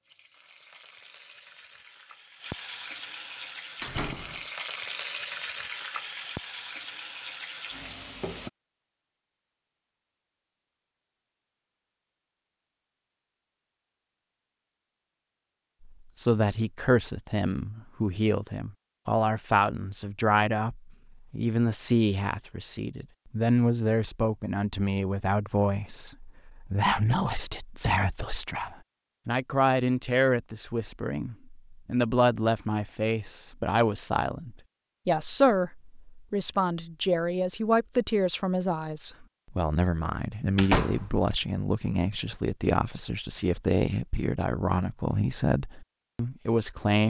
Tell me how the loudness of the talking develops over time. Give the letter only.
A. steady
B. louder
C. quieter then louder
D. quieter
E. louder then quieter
A.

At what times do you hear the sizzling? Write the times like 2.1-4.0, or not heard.
0.0-8.5.